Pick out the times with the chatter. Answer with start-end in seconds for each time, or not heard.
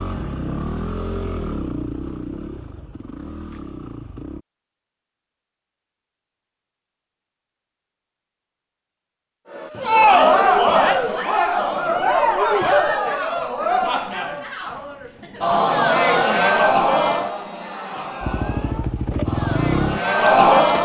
9.5-20.8.